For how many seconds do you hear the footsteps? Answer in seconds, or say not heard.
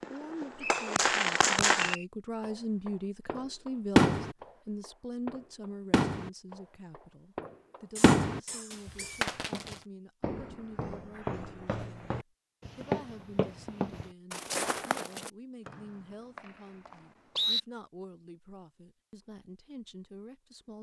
6 s.